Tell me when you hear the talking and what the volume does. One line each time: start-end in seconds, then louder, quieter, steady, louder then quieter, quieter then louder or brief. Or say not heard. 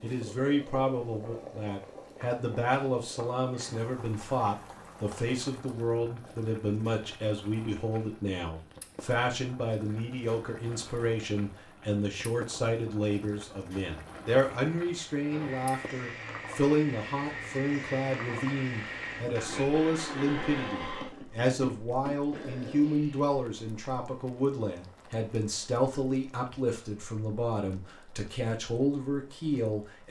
0.0-30.0 steady.